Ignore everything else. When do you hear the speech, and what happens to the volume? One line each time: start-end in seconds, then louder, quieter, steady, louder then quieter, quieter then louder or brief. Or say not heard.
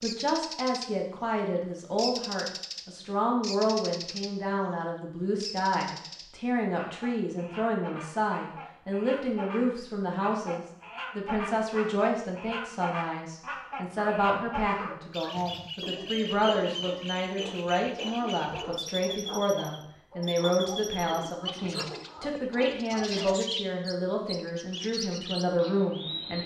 0.0-26.4 steady.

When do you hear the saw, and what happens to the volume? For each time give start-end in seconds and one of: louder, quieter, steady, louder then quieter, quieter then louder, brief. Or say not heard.
not heard.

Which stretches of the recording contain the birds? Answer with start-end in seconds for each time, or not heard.
0.0-0.9, 1.9-4.3, 5.4-26.4.